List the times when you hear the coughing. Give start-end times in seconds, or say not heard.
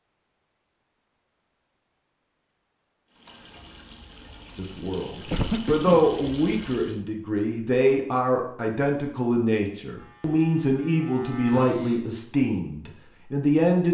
5.2-6.0.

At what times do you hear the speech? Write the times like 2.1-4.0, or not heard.
4.5-13.9.